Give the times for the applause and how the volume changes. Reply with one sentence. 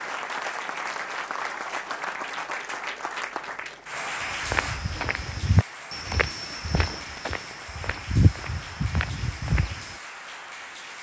The applause can be heard from 0.0 to 10.9 s, getting quieter.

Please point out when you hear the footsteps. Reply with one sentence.
The footsteps can be heard from 4.2 to 9.9 s.